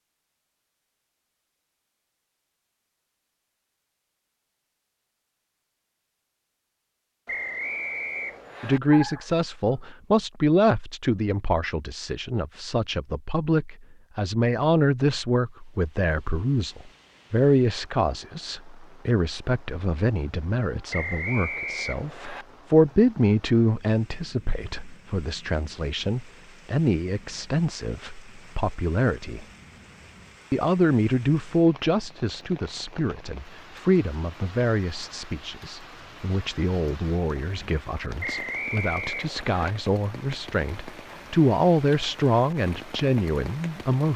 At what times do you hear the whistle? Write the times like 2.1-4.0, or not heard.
7.2-8.8, 20.9-22.4, 38.2-39.8.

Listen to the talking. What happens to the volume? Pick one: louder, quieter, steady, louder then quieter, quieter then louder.
steady.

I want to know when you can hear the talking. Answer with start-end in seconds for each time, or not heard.
8.6-29.4, 30.5-44.1.